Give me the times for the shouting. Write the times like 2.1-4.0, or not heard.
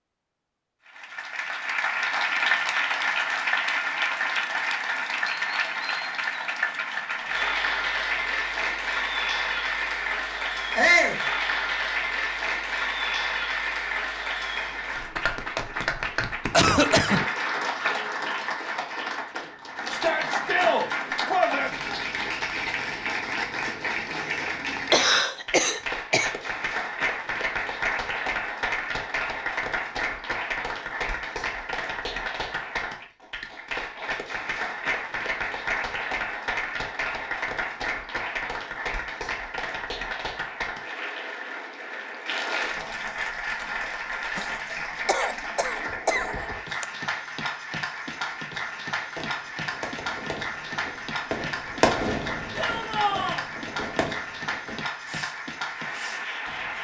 10.8-11.2, 19.9-21.8, 52.5-53.5.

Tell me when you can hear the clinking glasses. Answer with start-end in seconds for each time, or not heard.
not heard.